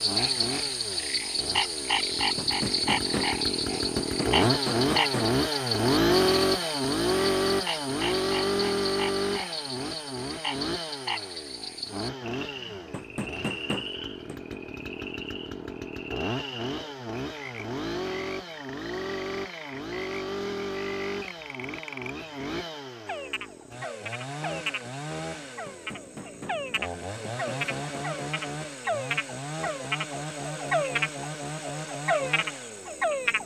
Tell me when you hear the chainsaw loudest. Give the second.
6 s.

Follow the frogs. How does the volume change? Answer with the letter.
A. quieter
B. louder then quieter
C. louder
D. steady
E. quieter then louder
E.